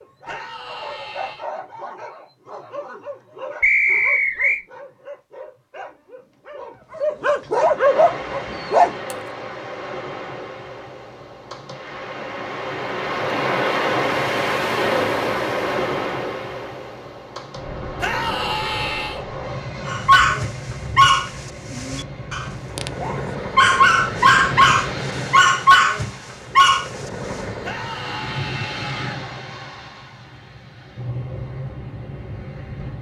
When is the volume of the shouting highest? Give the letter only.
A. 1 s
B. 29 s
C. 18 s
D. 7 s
C.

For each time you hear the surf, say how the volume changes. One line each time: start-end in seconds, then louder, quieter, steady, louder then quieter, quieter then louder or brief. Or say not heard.
7.7-32.9 louder then quieter.